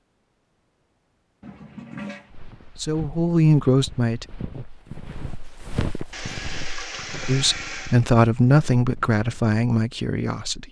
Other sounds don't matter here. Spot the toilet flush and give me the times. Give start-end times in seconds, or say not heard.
1.4-2.4, 6.1-8.0.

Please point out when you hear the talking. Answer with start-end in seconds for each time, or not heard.
2.6-4.2, 7.2-10.6.